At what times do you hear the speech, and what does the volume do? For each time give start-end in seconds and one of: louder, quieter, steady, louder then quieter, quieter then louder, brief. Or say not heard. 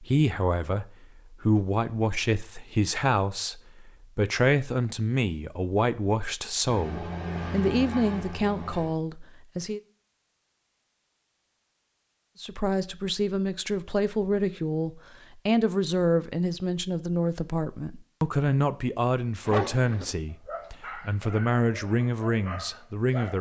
0.0-9.8 steady
12.4-23.3 steady.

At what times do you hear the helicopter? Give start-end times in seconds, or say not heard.
6.6-8.9.